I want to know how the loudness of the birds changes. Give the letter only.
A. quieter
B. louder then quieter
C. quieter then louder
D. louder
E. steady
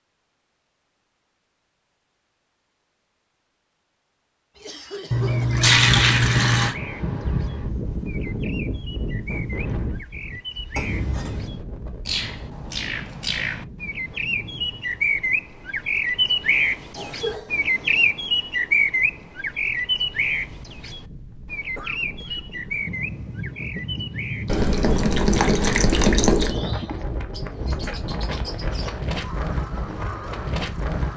B.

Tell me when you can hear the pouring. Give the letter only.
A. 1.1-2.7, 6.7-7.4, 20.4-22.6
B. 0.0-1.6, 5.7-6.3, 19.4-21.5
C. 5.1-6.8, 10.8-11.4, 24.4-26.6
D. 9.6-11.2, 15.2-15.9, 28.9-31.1
C.